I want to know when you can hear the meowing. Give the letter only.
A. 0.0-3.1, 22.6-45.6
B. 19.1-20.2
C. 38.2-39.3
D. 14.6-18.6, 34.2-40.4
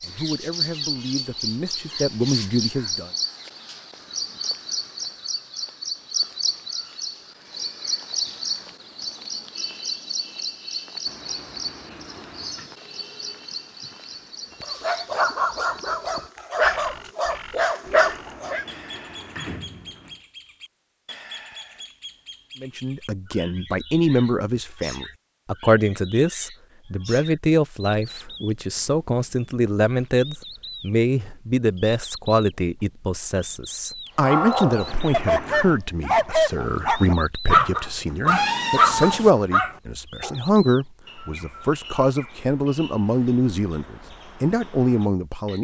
C.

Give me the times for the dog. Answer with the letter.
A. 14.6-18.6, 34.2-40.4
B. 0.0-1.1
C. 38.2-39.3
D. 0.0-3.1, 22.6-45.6
A.